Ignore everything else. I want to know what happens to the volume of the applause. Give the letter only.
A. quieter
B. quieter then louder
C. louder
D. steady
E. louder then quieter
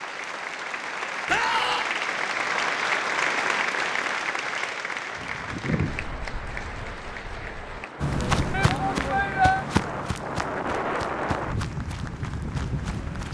A.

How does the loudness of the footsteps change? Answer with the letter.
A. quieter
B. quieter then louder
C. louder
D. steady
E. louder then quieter
A.